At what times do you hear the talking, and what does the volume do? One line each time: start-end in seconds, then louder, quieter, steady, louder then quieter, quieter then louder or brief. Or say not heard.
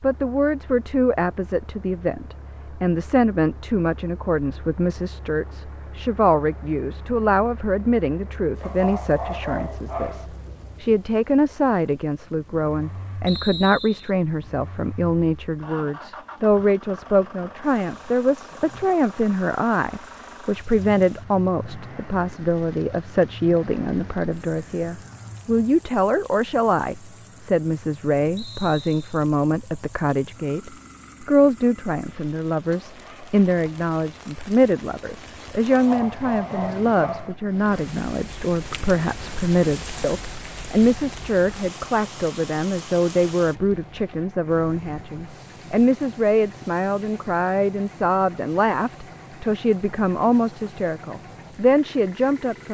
0.0-52.6 steady.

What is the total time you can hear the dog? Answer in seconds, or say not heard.
3 s.